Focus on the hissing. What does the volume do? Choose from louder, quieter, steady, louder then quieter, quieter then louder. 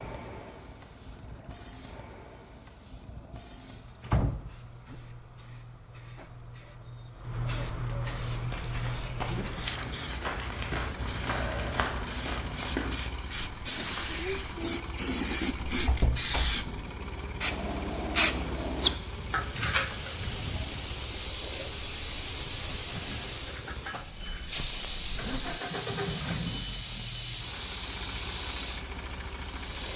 louder.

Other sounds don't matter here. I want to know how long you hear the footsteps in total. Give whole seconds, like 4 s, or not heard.
6 s.